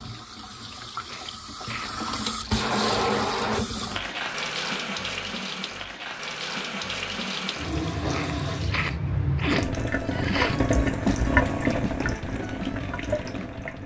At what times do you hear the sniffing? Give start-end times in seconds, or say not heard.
1.0-1.9, 8.1-10.6.